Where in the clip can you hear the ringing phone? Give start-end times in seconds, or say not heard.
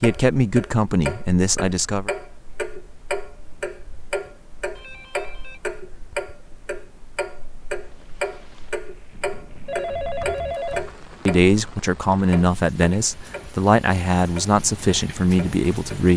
4.8-5.6, 9.7-10.9.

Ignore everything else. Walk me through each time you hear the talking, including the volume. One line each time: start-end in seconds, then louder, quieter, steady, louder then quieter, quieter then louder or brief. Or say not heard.
0.0-2.1 brief
11.2-16.1 steady.